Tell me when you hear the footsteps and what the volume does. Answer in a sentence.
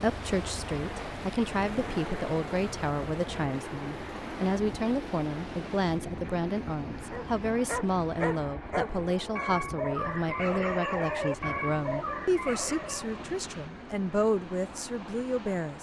You can't hear the footsteps here.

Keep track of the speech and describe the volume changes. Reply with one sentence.
The loudness of the speech stays about the same.